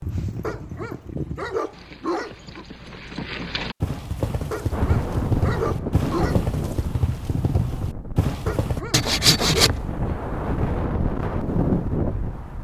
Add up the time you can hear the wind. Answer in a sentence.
The wind can be heard for 8 seconds in total.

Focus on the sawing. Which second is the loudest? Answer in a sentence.
The volume of the sawing peaks at 9 seconds.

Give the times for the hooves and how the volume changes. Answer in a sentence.
You can hear the hooves from 0.0 to 8.8 s, getting louder.